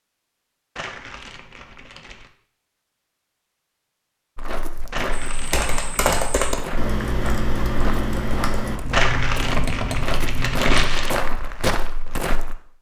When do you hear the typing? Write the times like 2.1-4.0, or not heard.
5.1-10.8.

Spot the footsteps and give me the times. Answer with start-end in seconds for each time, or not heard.
4.3-12.6.